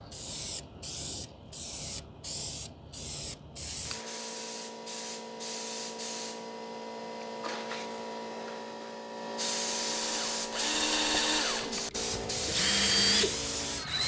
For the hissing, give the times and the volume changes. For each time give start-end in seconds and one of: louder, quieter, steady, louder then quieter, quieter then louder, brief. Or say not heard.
0.0-14.0 louder.